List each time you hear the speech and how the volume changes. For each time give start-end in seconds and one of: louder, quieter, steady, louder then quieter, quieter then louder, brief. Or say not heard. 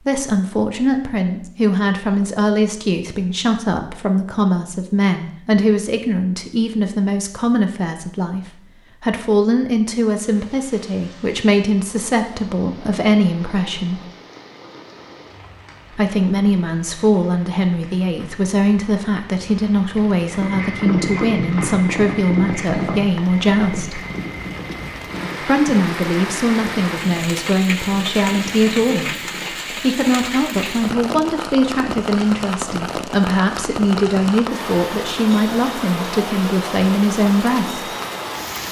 0.1-14.1 steady
15.9-24.0 steady
25.4-37.9 steady.